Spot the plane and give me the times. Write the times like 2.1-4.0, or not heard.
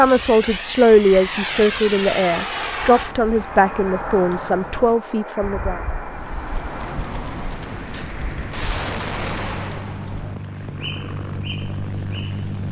0.0-12.6.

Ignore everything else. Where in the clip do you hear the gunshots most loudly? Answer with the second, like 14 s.
9 s.